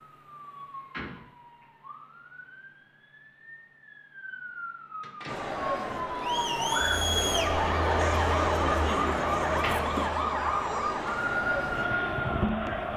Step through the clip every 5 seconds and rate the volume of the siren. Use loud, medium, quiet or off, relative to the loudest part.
quiet, loud, loud.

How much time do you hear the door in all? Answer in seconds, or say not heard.
2 s.